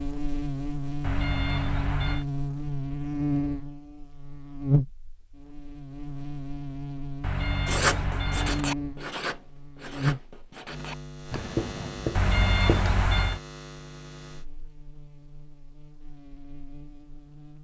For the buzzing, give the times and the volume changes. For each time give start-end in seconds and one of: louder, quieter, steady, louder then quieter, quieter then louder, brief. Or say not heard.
0.0-17.5 quieter.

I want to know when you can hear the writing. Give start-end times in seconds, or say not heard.
7.7-12.9.